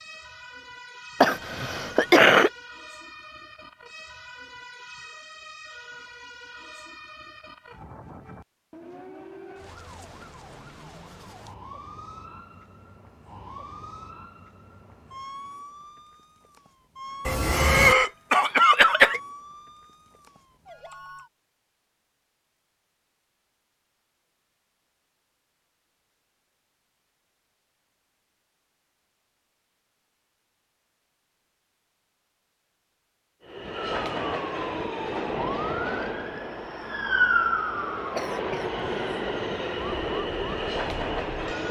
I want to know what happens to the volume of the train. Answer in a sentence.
The volume of the train goes down, then up.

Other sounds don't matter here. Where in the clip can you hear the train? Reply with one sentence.
You can hear the train from 33.4 to 41.6 s.